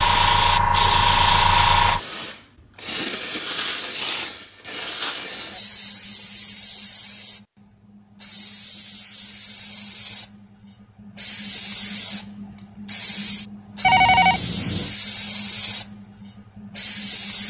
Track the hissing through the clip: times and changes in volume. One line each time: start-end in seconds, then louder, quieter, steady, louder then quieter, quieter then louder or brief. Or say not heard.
0.0-17.4 quieter then louder.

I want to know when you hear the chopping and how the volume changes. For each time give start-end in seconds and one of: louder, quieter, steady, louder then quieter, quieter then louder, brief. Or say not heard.
not heard.